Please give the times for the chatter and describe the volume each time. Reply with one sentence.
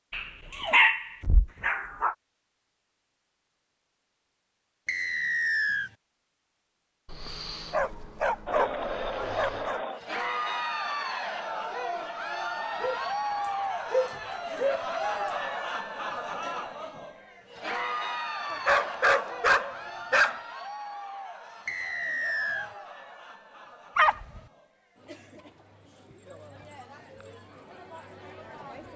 You can hear the chatter from 8.4 to 28.9 s, getting quieter.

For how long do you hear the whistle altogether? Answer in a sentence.
The whistle can be heard for 2 seconds in total.